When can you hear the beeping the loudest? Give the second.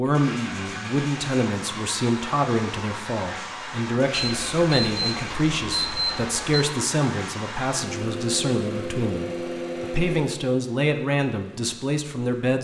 6 s.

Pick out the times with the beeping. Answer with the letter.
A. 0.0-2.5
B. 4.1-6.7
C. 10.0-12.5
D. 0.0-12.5
B.